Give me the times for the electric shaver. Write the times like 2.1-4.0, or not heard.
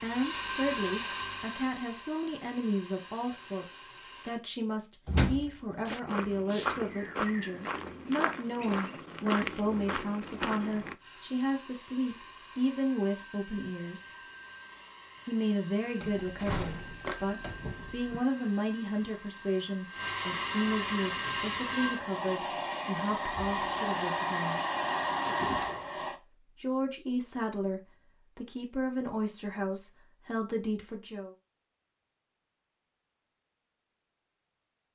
not heard.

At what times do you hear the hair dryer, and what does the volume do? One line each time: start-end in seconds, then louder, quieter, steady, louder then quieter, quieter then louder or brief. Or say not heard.
0.0-4.4 quieter
10.9-26.2 louder.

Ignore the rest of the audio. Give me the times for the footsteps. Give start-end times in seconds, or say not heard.
5.8-10.9.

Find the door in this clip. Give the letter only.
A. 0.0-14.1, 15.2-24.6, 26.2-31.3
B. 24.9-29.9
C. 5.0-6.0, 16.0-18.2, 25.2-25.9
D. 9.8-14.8
C.